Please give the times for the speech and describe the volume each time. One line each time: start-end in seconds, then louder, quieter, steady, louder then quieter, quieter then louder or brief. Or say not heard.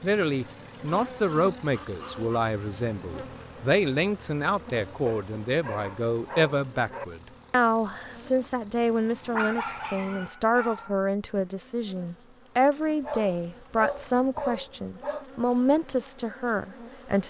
0.0-17.2 steady.